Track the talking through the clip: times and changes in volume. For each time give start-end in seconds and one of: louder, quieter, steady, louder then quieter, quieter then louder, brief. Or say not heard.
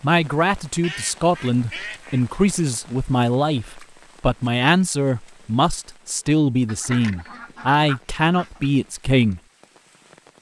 0.0-9.4 steady.